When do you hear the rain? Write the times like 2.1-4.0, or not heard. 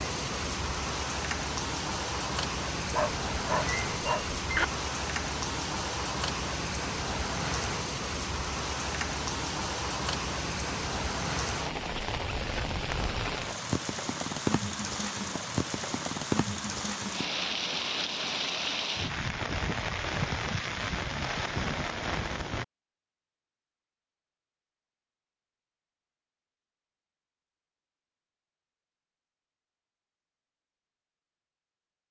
0.0-22.6.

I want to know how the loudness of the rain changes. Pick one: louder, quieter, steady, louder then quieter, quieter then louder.
steady.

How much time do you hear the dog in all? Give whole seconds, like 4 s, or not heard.
2 s.